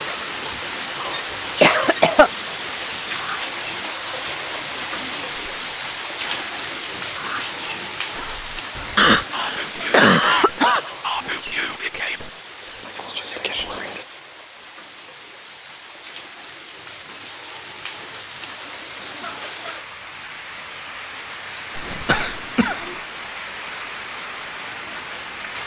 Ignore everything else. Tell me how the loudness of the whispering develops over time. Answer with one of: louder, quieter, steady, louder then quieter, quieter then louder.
louder.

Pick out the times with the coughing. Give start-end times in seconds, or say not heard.
0.8-2.3, 8.9-10.9, 21.8-23.0.